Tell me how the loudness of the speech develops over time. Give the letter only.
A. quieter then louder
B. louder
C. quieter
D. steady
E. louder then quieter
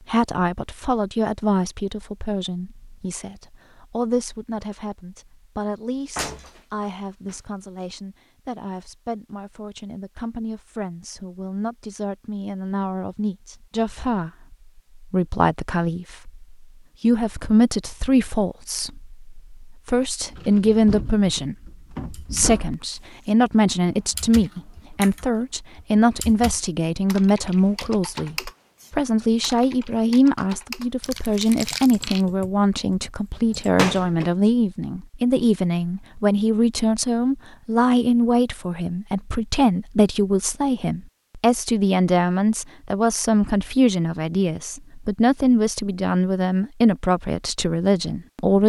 B.